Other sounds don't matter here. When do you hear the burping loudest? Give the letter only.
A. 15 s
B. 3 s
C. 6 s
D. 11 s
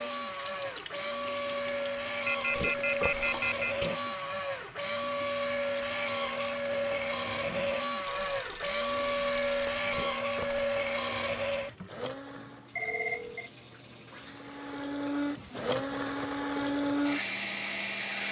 B.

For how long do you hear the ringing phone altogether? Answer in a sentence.
You can hear the ringing phone for 4 seconds altogether.